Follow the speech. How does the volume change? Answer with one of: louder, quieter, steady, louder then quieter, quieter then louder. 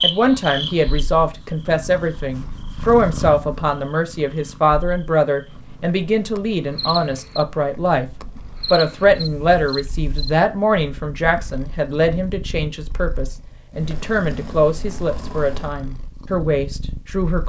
steady.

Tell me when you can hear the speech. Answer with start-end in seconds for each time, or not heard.
0.0-8.1, 8.7-17.4.